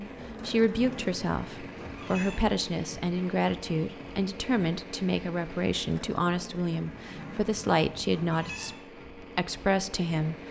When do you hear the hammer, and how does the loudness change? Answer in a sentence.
You can't hear the hammer here.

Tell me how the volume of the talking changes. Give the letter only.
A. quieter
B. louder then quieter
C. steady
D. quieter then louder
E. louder
C.